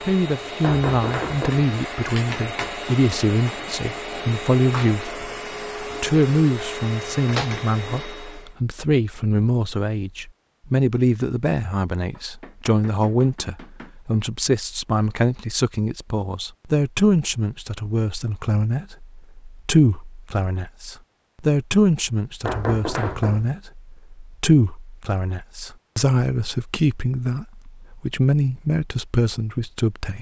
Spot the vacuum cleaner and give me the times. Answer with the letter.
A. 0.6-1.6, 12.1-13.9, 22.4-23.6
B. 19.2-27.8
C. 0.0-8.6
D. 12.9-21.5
C.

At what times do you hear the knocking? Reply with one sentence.
The knocking can be heard from 0.6 to 1.6 s, from 12.1 to 13.9 s and from 22.4 to 23.6 s.